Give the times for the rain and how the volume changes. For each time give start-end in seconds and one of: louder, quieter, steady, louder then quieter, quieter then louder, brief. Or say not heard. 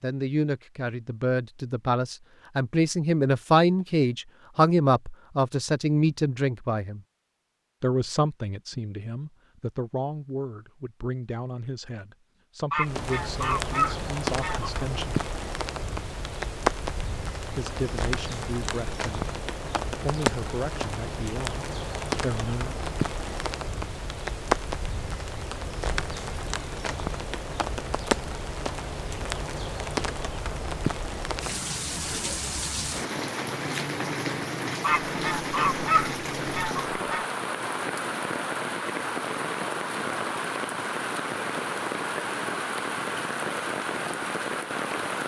12.8-45.2 steady.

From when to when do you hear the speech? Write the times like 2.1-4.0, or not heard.
0.0-7.0, 7.8-15.2, 17.6-19.3, 20.0-22.8.